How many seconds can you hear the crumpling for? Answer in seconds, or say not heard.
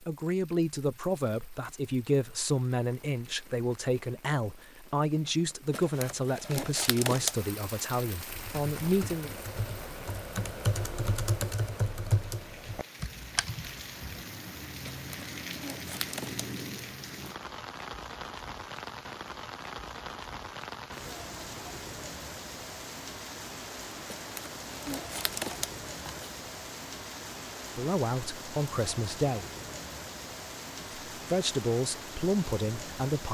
6 s.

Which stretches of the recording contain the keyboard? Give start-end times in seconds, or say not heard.
8.2-14.2.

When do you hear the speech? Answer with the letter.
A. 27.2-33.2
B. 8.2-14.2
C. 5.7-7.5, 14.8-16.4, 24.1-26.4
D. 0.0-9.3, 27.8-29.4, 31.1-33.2
D.